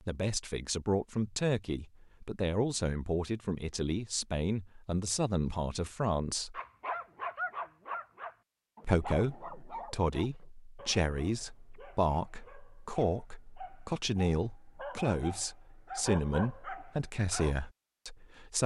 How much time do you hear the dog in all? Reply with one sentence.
The dog can be heard for 11 seconds in total.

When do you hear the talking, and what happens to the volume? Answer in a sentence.
You can hear the talking from 0.1 to 6.6 s, at a steady volume; and from 8.8 to 18.6 s, at a steady volume.